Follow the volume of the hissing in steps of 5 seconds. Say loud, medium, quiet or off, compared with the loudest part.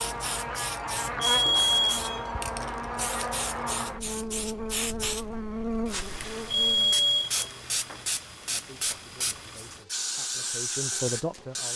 medium, loud, loud.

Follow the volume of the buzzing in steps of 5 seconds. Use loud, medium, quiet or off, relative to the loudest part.
loud, loud, off.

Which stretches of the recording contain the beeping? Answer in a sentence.
The beeping can be heard from 1.2 to 2.8 s and from 6.5 to 8.1 s.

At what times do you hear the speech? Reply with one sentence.
You can hear the speech from 8.4 to 11.7 s.